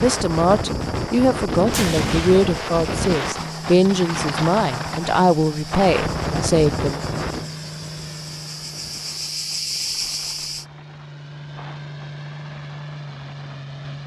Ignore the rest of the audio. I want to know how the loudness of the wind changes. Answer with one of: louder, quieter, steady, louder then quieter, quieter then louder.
quieter.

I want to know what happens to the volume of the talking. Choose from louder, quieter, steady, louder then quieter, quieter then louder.
steady.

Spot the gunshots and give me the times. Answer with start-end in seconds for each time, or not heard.
1.7-2.8.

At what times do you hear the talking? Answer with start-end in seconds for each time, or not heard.
0.0-7.0.